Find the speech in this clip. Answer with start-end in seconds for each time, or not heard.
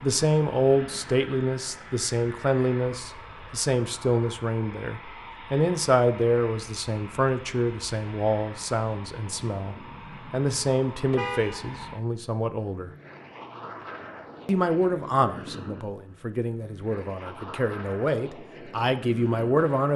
0.0-12.9, 14.4-19.9.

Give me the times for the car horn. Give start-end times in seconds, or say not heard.
11.1-11.7.